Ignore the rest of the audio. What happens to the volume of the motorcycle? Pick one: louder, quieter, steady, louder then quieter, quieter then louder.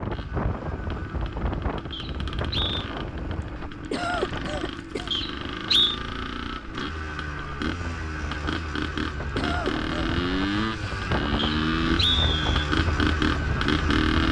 louder.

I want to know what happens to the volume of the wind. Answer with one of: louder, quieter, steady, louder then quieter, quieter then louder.
quieter then louder.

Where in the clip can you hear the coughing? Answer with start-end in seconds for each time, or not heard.
3.8-5.1, 9.2-10.2.